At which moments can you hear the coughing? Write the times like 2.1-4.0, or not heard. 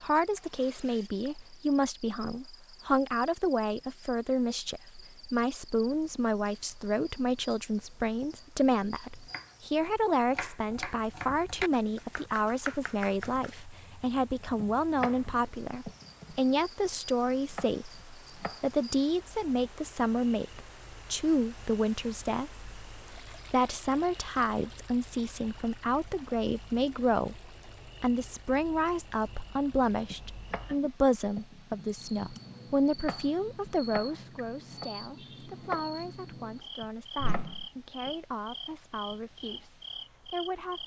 not heard.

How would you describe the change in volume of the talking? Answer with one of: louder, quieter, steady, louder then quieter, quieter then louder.
quieter.